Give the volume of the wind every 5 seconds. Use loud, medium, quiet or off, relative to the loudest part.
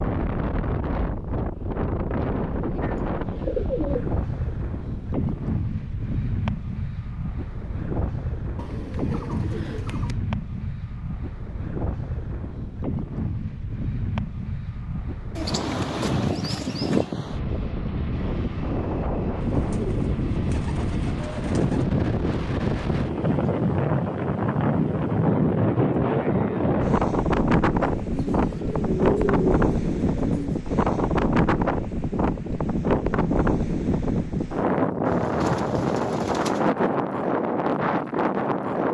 medium, medium, medium, medium, loud, loud, loud, loud.